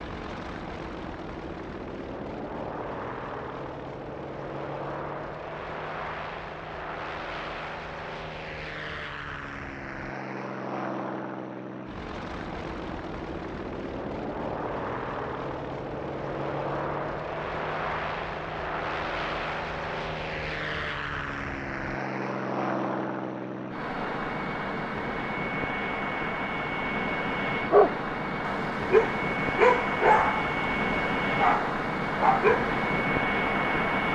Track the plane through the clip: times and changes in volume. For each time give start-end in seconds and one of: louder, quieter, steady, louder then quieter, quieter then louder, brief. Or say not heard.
0.0-34.0 louder.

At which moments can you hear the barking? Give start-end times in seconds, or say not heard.
27.6-32.8.